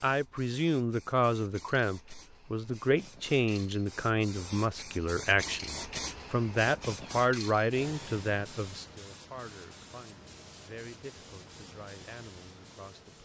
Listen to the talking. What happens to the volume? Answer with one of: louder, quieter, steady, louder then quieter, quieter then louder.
quieter.